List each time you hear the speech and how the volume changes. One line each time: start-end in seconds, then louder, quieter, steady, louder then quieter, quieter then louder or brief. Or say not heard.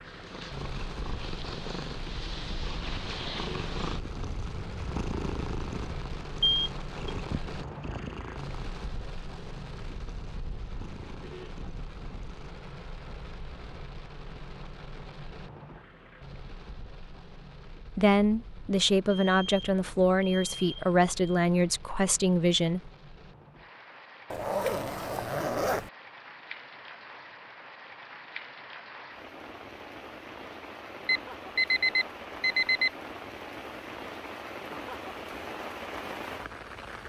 17.9-22.9 steady.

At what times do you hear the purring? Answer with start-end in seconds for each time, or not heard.
0.0-12.6.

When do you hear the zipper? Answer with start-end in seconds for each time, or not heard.
24.3-25.9.